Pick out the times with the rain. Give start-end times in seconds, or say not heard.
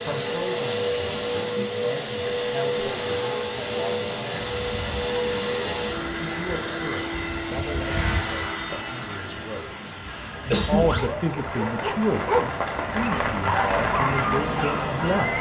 4.3-15.3.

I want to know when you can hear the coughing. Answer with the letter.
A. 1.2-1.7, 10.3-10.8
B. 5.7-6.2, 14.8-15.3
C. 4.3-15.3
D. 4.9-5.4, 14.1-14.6
A.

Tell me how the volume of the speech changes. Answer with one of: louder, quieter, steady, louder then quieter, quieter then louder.
louder.